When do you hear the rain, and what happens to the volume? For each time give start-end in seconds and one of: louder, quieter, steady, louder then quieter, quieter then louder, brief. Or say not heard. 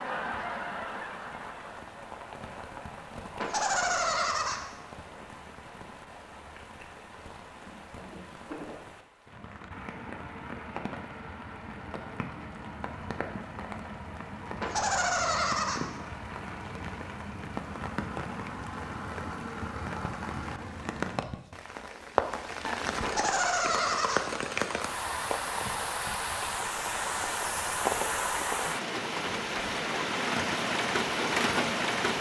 0.0-32.1 louder.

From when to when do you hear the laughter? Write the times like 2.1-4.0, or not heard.
3.4-4.6, 14.6-15.8, 23.0-24.2.